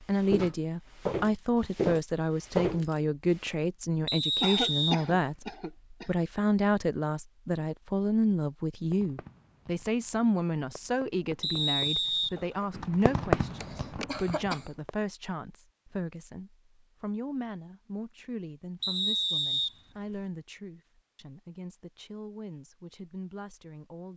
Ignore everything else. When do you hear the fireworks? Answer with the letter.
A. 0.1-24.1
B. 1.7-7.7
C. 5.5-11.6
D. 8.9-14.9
D.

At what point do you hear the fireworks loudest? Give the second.
13 s.